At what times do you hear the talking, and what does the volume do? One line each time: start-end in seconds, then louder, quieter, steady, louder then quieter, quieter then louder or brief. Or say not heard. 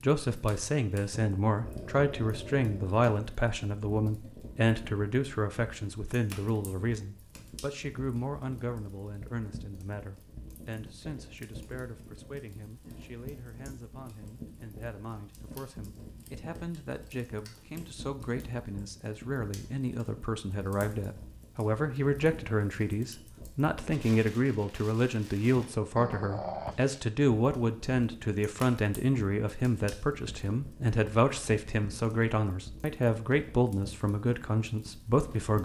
0.0-35.6 quieter then louder.